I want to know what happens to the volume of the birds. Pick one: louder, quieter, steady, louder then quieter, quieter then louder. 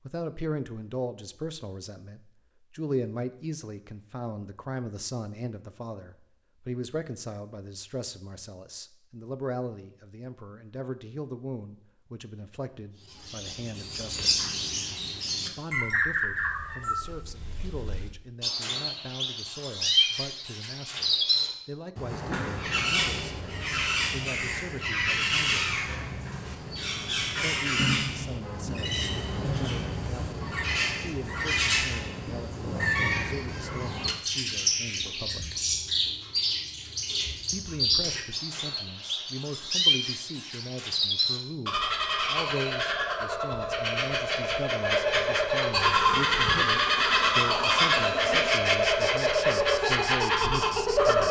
louder.